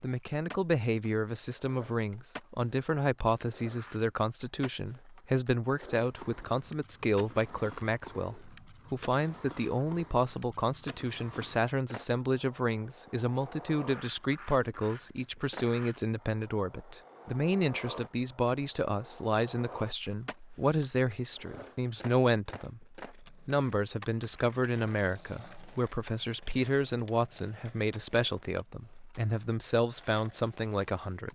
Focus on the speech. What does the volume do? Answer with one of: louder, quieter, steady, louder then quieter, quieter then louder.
steady.